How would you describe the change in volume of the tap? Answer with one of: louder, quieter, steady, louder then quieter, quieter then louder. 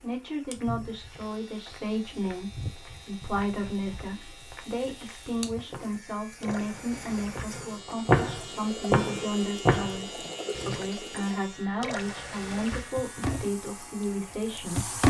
louder.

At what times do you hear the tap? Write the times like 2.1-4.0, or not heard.
0.0-15.0.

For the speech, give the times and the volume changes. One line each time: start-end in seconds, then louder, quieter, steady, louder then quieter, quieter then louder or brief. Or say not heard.
0.0-14.9 steady.